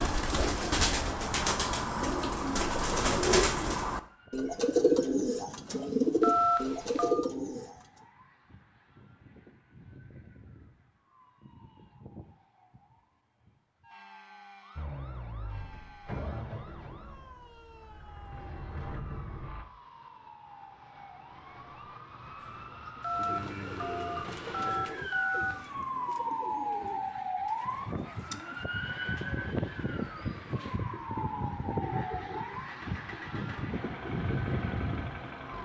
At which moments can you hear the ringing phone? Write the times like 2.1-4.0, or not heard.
6.2-7.2, 23.0-25.7.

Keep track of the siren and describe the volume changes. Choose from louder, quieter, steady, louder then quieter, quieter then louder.
louder.